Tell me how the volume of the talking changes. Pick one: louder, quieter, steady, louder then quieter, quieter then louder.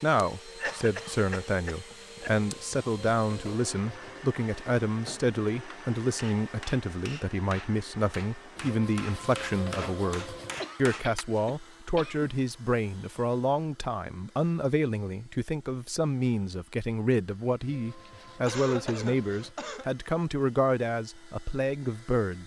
steady.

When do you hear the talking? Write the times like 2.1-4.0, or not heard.
0.0-22.4.